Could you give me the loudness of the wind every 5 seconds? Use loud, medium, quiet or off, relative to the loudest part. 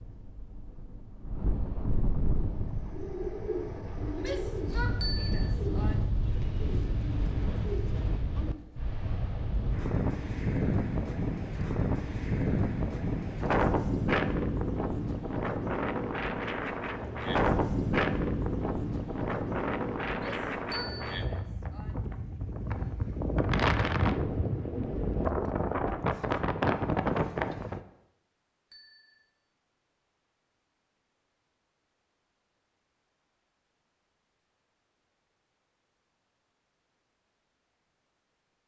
medium, medium, loud, loud, loud, loud, off, off.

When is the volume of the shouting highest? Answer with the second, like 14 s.
5 s.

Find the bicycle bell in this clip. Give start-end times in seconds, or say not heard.
5.0-5.5, 20.7-21.1, 28.7-29.2.